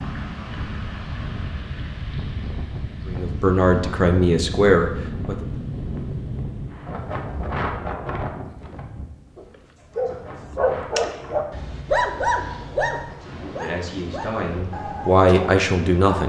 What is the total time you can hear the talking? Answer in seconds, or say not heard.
5 s.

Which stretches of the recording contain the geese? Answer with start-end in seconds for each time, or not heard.
not heard.